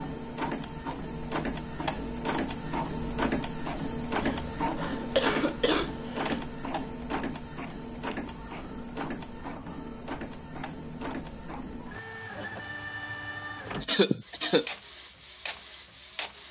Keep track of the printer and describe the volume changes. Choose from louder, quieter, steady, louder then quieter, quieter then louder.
quieter.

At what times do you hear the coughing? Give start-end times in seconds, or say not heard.
4.2-6.3, 13.8-14.7.